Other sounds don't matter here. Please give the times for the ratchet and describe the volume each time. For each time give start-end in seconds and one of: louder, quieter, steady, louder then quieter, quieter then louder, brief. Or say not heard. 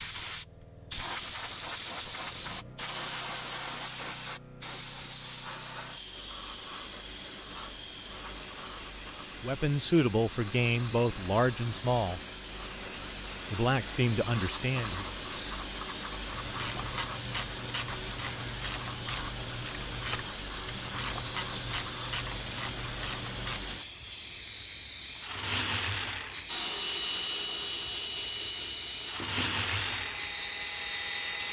16.3-23.6 steady.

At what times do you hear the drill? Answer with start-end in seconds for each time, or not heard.
26.4-31.4.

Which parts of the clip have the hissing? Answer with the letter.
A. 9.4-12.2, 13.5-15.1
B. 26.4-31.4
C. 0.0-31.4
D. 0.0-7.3
C.